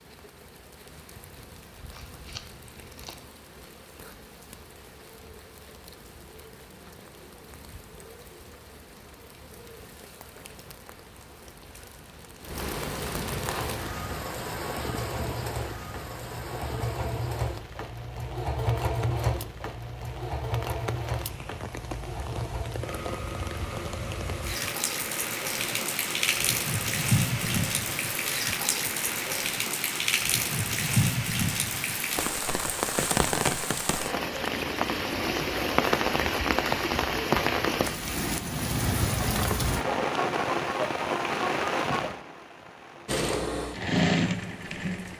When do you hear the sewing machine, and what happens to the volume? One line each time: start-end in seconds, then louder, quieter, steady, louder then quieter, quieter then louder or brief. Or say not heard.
13.4-28.4 louder then quieter
43.0-45.1 brief.